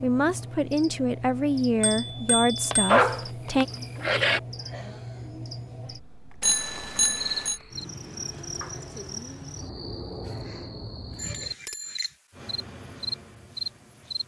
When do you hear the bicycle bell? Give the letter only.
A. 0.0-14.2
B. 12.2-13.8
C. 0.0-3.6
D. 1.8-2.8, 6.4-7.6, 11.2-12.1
D.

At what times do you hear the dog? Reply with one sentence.
You can hear the dog from 2.7 to 4.4 s.